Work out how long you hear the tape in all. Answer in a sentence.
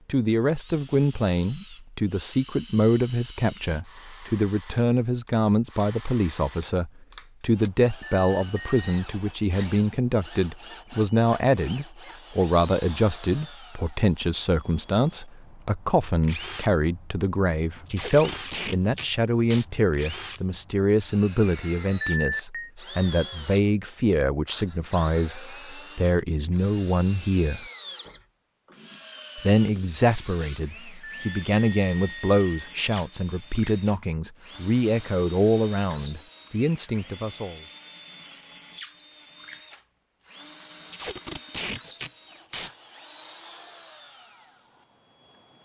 The tape can be heard for 4 seconds in total.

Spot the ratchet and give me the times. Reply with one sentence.
You can't hear the ratchet here.